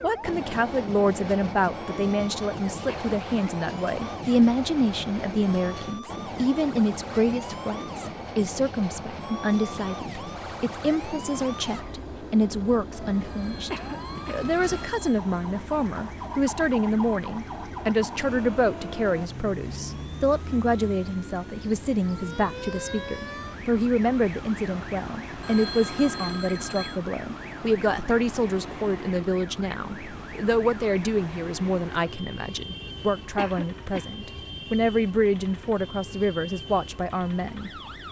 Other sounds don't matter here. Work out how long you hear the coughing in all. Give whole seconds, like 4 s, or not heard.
2 s.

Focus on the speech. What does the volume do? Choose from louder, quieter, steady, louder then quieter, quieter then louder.
steady.